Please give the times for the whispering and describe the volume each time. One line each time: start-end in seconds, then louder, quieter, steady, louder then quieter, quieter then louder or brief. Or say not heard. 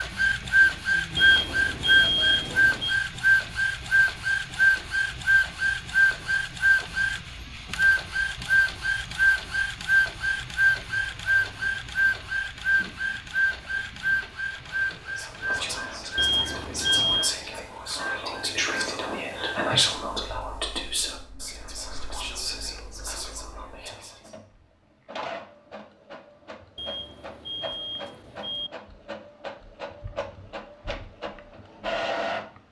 14.6-24.4 louder then quieter.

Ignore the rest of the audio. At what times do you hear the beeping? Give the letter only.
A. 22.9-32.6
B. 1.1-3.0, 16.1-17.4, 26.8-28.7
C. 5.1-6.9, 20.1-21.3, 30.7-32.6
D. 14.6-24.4
B.